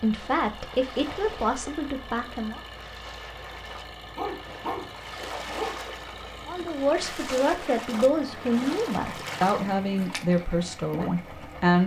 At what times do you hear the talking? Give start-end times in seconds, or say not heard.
0.0-2.6, 6.5-11.8.